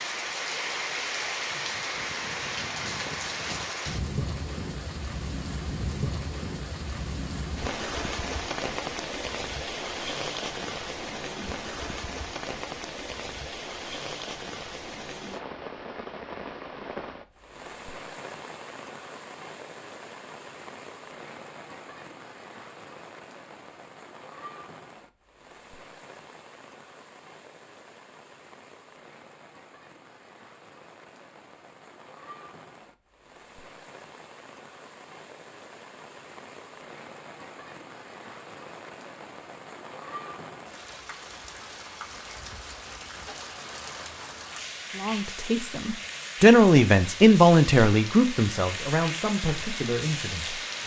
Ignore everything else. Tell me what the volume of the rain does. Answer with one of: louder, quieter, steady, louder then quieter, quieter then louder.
quieter then louder.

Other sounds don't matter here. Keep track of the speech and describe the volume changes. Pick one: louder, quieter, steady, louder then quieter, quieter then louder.
louder then quieter.